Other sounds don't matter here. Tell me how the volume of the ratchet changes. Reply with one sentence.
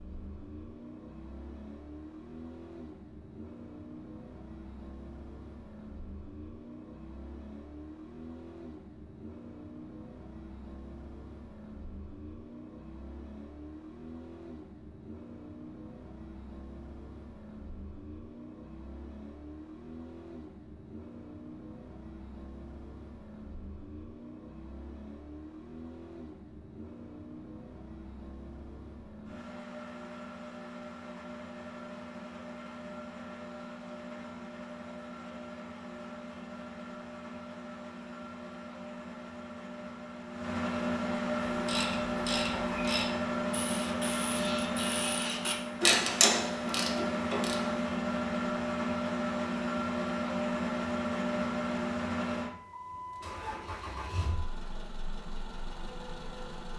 The volume of the ratchet goes up, then down.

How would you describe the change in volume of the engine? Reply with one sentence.
The volume of the engine goes up.